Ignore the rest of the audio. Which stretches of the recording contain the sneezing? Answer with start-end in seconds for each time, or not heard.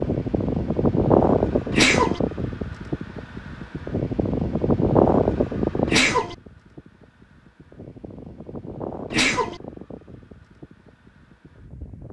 1.7-2.2, 5.8-6.3, 9.1-9.6.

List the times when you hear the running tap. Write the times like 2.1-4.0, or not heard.
not heard.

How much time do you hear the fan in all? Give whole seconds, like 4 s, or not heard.
12 s.